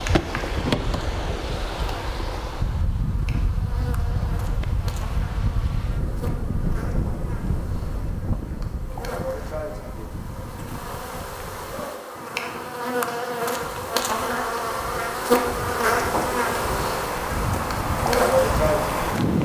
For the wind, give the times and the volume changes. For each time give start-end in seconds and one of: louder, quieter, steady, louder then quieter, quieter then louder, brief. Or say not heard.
0.0-19.4 quieter then louder.